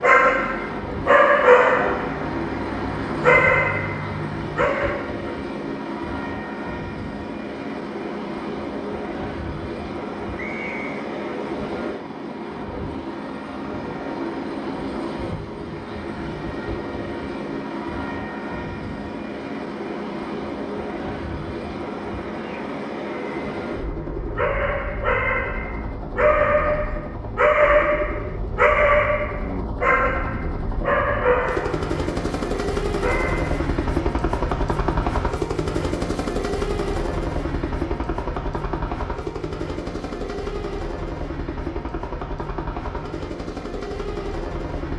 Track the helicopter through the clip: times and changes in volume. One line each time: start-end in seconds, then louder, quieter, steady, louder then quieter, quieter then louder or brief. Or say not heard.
0.0-44.9 steady.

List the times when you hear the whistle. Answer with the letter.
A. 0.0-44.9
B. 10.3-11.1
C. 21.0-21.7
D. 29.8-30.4
B.